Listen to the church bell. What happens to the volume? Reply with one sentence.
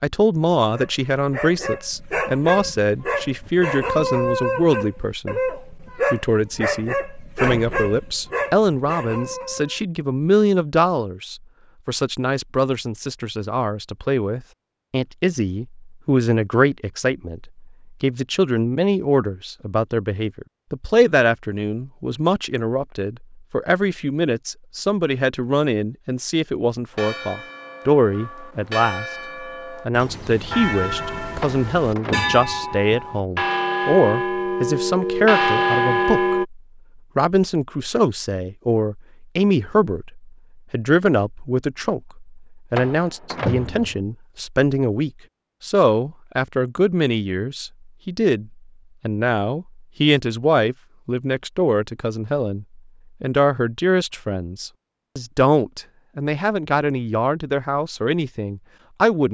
The volume of the church bell goes up.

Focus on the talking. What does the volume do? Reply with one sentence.
The volume of the talking stays about the same.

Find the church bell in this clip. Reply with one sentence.
You can hear the church bell from 26.9 to 36.5 s.